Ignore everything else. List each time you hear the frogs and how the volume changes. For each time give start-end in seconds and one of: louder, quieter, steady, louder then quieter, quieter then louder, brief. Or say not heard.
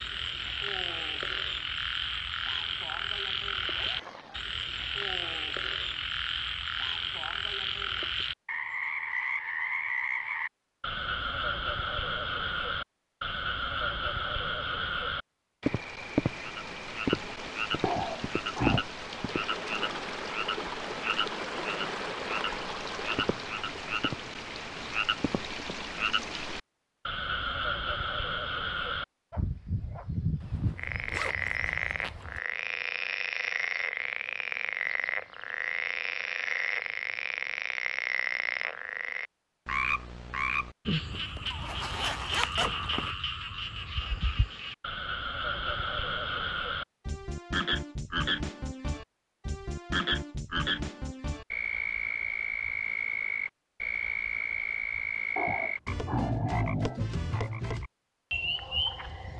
0.0-59.3 steady.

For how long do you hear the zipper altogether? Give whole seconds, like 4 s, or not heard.
5 s.